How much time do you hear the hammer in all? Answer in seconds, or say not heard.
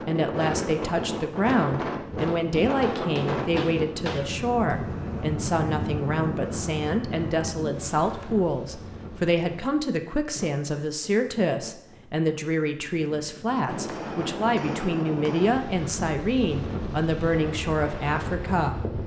4 s.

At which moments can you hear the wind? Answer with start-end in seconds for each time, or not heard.
0.0-19.0.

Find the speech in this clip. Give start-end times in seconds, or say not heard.
0.1-18.8.